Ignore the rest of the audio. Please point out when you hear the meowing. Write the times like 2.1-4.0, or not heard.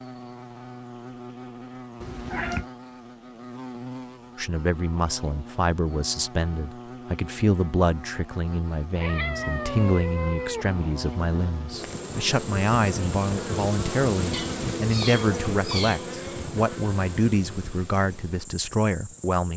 2.0-2.6, 8.9-10.8, 14.3-16.1.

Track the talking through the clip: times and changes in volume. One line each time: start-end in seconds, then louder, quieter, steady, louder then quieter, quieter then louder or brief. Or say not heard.
4.3-19.5 steady.